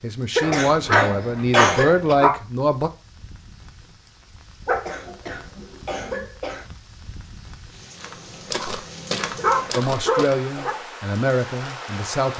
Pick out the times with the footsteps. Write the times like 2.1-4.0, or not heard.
8.0-10.4.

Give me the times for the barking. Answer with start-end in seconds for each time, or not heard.
0.4-2.3, 4.7-6.2, 8.6-10.8.